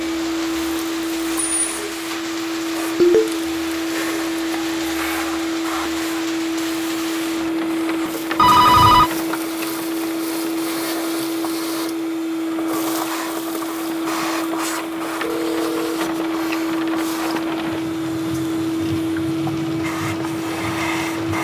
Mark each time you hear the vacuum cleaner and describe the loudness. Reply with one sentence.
You can hear the vacuum cleaner from 0.0 to 21.3 s, at a steady volume.